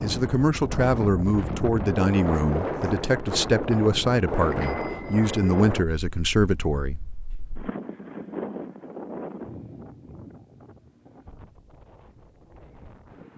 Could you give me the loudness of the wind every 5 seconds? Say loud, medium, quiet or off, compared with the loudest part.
loud, medium, quiet.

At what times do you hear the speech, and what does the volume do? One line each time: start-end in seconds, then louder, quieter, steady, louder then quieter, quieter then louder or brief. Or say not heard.
0.0-7.0 steady.